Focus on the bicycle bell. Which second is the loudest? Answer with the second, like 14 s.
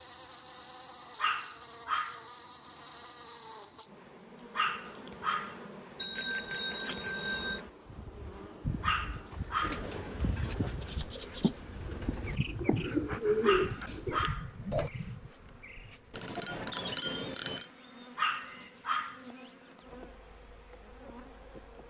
6 s.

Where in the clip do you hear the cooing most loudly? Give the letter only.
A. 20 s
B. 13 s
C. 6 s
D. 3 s
B.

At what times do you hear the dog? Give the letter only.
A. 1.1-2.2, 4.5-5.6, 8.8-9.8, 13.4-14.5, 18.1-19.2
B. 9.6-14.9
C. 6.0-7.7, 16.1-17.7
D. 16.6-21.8
A.